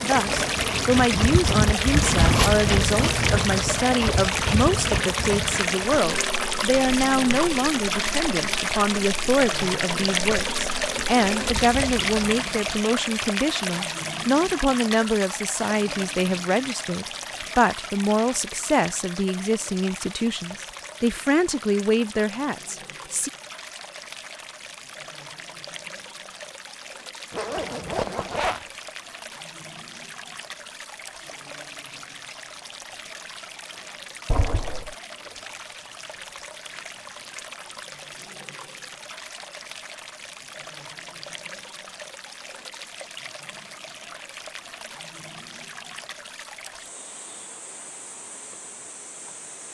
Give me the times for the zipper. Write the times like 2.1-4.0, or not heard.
2.1-3.8, 27.3-28.6, 34.2-35.0.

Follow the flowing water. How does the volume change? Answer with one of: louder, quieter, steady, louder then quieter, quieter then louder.
quieter.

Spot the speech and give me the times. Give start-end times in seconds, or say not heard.
0.0-23.3.